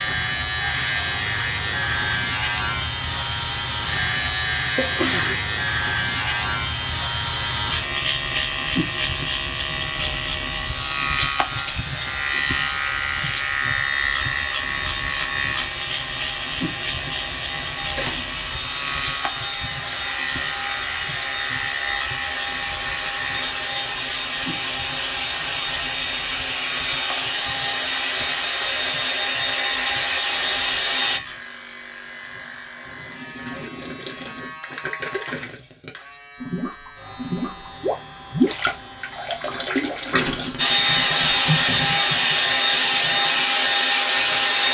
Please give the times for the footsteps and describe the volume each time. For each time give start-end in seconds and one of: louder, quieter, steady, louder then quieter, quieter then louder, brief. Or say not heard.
not heard.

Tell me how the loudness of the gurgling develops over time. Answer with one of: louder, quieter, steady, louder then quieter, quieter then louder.
louder then quieter.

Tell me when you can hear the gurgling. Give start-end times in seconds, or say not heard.
33.0-43.4.